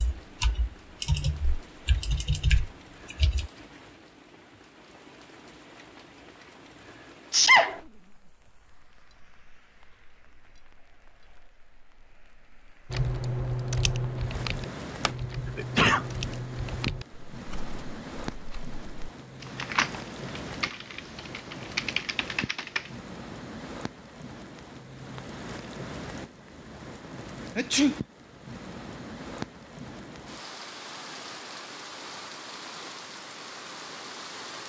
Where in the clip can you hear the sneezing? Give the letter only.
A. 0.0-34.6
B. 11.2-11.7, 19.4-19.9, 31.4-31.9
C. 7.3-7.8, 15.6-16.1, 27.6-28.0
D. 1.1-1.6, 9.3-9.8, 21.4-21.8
C.